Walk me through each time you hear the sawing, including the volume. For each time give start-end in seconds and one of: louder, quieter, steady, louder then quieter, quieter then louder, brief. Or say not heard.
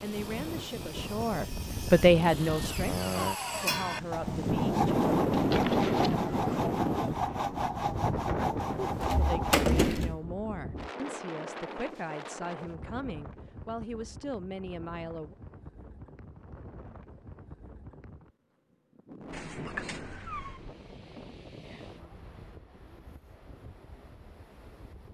0.0-9.6 louder.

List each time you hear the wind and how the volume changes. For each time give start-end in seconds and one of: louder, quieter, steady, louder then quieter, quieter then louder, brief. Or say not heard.
0.0-25.0 quieter.